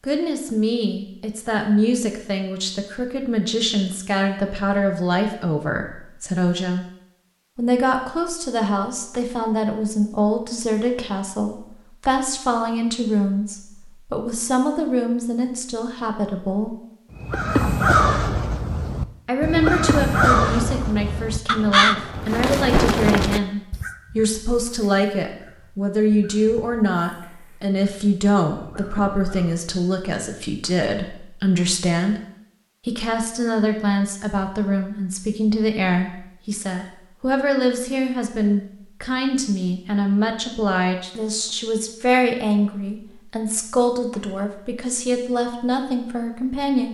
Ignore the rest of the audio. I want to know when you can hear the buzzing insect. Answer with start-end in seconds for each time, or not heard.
not heard.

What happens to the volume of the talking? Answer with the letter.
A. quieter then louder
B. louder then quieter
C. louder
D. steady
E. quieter
D.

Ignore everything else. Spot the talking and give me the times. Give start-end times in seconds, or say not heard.
0.0-6.8, 7.5-16.8, 19.2-32.1, 32.9-46.8.